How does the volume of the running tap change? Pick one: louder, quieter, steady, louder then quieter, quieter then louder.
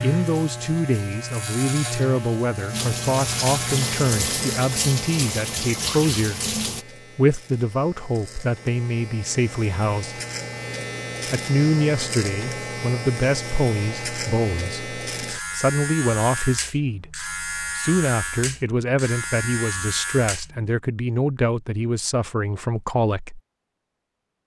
louder.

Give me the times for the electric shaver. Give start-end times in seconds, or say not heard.
0.0-20.7.